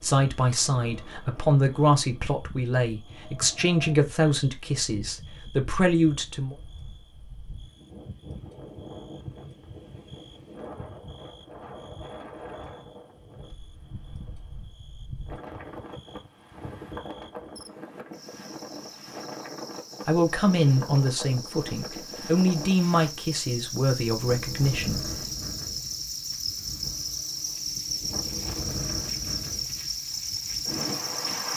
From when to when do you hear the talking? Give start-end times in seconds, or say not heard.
0.0-6.5, 20.1-25.1.